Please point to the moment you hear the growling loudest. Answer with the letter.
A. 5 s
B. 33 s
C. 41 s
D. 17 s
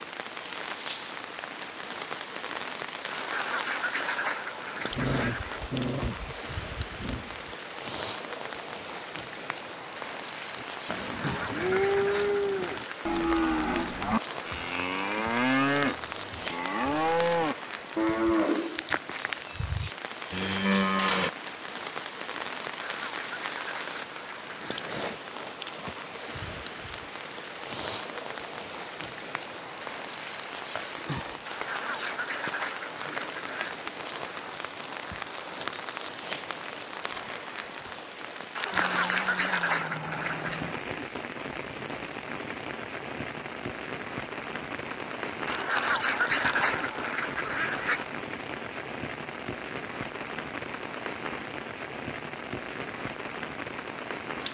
A.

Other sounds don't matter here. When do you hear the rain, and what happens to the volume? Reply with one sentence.
You can hear the rain from 0.0 to 54.4 s, at a steady volume.